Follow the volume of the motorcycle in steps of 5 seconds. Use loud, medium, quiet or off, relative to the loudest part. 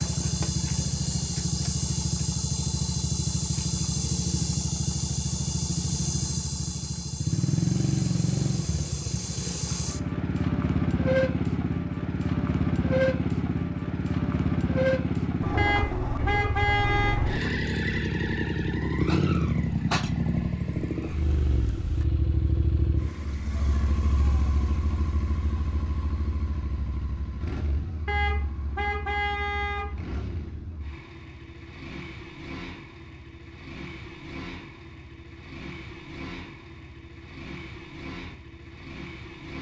loud, loud, loud, loud, medium, quiet, quiet, quiet.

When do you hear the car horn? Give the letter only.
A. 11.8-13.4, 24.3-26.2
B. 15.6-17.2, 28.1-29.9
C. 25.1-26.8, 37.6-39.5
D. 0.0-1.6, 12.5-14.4
B.